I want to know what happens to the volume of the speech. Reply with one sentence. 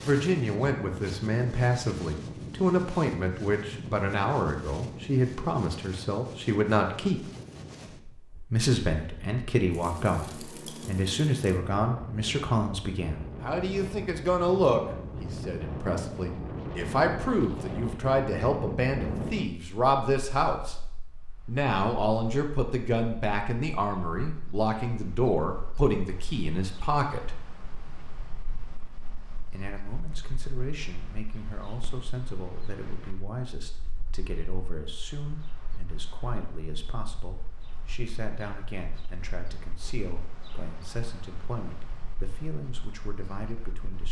The loudness of the speech goes down.